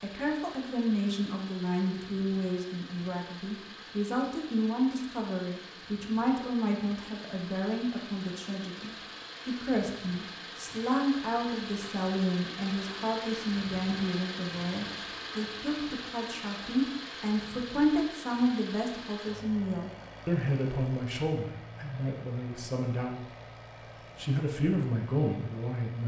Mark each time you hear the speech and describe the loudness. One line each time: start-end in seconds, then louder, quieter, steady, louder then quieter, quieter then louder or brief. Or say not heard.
0.0-23.4 steady
24.1-26.0 brief.